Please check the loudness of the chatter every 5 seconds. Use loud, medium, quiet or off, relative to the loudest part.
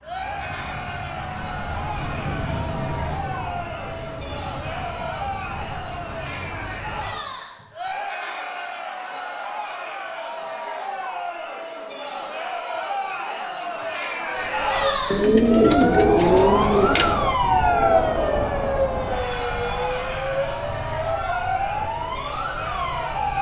medium, medium, loud, loud, medium.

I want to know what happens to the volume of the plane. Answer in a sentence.
The loudness of the plane goes up, then down.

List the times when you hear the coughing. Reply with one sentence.
You can't hear the coughing here.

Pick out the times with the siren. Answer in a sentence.
The siren can be heard from 14.2 to 23.3 s.